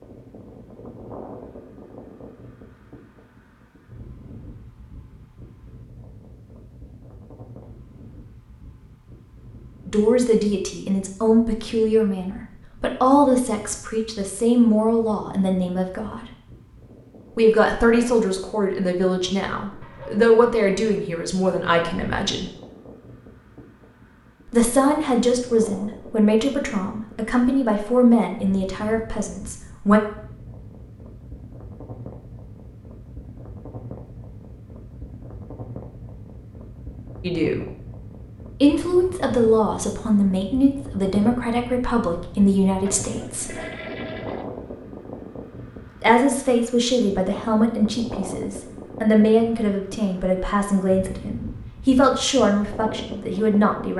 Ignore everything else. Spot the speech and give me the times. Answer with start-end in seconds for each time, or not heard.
9.8-16.2, 17.4-22.5, 24.5-30.0, 37.2-37.6, 38.6-43.6, 46.0-53.9.